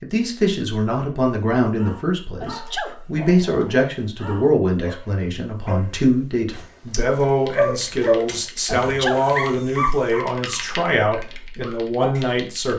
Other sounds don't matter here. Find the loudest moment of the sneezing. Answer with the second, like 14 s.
9 s.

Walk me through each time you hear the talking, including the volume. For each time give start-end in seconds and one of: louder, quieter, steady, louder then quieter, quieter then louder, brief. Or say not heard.
0.0-12.7 steady.